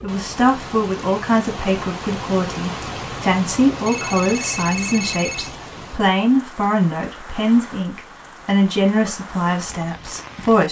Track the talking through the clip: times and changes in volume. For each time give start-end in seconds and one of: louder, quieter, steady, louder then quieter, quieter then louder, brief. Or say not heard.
0.0-10.6 steady.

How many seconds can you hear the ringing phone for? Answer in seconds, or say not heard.
2 s.